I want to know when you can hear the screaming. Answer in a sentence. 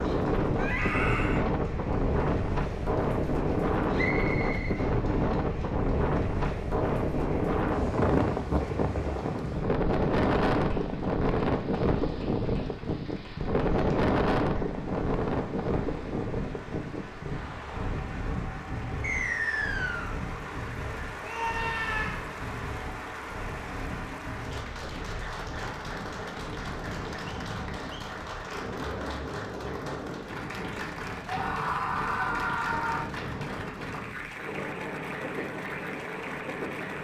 The screaming can be heard from 0.6 to 1.4 s, from 21.2 to 22.2 s and from 31.2 to 33.0 s.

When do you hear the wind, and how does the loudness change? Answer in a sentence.
You can hear the wind from 0.0 to 36.9 s, getting quieter.